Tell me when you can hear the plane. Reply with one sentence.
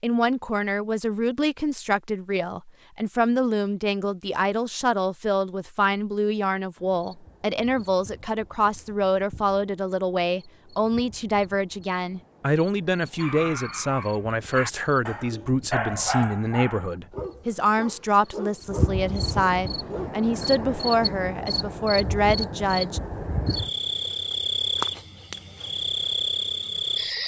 The plane can't be heard in this clip.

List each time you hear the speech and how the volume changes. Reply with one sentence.
The speech can be heard from 0.0 to 23.0 s, at a steady volume.